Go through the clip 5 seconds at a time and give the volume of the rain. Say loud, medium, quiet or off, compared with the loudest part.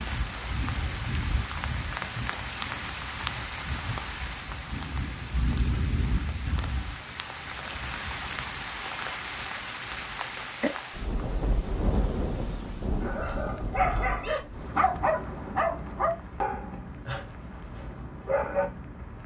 loud, loud, loud, medium.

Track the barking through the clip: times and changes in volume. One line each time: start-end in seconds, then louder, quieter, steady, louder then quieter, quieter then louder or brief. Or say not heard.
13.0-18.7 quieter.